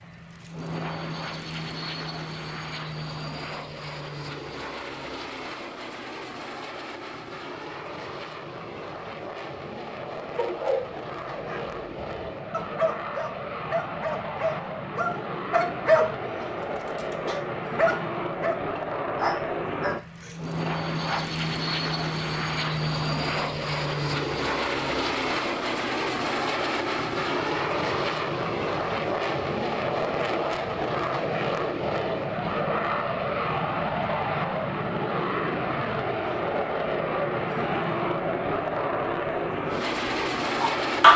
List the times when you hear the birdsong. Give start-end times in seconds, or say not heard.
not heard.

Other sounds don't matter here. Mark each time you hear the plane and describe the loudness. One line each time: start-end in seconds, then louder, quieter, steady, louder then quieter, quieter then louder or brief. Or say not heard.
0.0-41.1 louder.